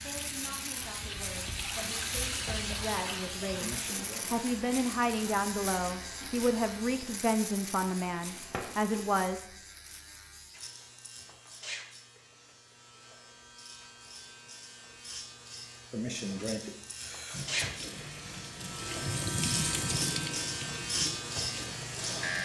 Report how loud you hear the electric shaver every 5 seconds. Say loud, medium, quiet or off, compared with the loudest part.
medium, medium, quiet, medium, loud.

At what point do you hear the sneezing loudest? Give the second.
16 s.